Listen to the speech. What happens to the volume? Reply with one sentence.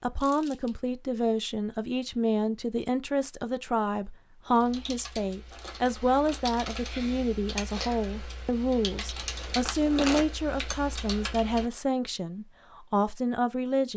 The loudness of the speech stays about the same.